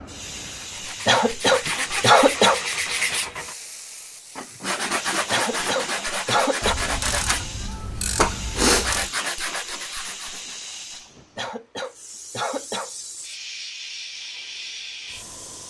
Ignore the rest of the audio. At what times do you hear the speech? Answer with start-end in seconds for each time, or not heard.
not heard.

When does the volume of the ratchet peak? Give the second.
9 s.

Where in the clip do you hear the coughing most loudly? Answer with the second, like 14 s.
2 s.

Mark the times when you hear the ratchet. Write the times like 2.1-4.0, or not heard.
6.6-9.1.